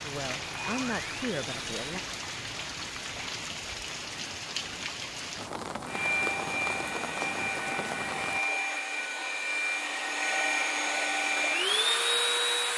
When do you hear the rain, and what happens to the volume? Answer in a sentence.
The rain can be heard from 0.0 to 8.4 s, at a steady volume.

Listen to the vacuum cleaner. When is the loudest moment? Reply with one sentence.
The loudest moment of the vacuum cleaner is at 12 seconds.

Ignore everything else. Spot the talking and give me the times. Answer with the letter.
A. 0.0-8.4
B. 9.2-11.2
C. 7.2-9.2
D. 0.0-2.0
D.